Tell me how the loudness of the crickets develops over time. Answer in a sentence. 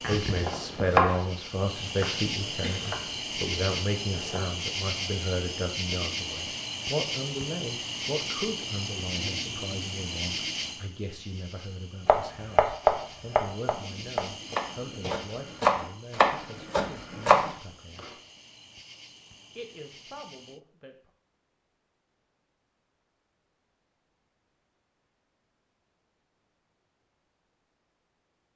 The loudness of the crickets goes down.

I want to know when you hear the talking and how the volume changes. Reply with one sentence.
The talking can be heard from 0.1 to 18.1 s, getting quieter; and briefly from 19.6 to 21.1 s.